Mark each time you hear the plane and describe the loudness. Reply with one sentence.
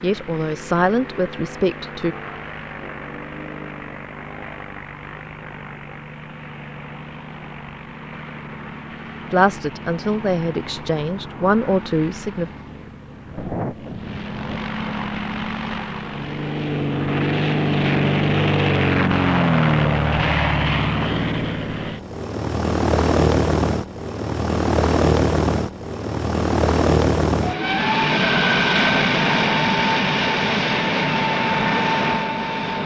The plane can be heard from 0.0 to 32.8 s, getting louder.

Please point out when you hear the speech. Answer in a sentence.
You can hear the speech from 0.0 to 2.1 s and from 9.3 to 12.5 s.